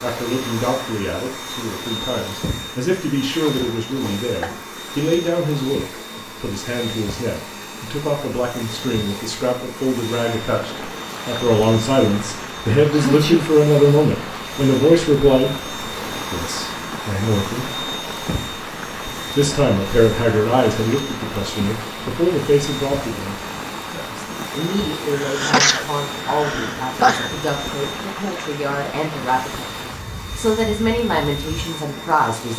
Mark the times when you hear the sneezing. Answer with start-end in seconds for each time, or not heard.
3.4-4.5, 12.9-13.4, 25.1-27.4.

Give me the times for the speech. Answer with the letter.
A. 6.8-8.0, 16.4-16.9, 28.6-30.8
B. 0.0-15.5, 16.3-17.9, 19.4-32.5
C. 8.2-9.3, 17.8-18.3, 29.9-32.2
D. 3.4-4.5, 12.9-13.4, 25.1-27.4
B.